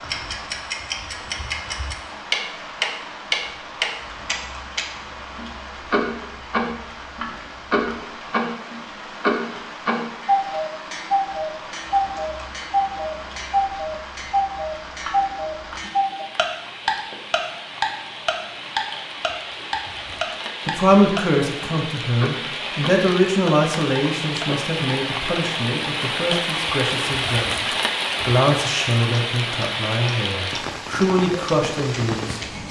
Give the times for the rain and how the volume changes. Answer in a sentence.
You can hear the rain from 0.0 to 32.6 s, getting louder.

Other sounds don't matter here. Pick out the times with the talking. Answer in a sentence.
You can hear the talking from 20.6 to 32.4 s.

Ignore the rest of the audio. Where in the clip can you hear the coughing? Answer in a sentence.
The coughing can't be heard in this clip.